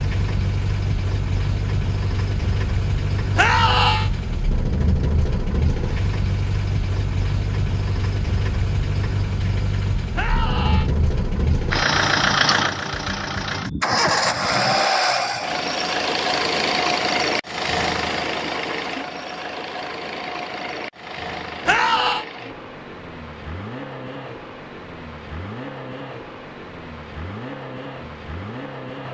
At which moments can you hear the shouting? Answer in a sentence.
You can hear the shouting from 3.4 to 4.1 s, from 10.2 to 10.9 s and from 21.6 to 22.2 s.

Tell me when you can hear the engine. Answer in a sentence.
The engine can be heard from 0.0 to 29.0 s.